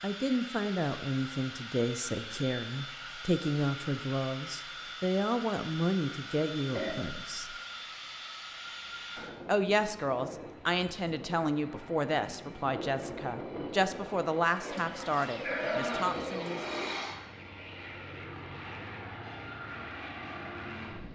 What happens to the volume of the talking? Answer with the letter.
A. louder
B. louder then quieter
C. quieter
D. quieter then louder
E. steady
E.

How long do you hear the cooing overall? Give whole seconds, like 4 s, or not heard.
2 s.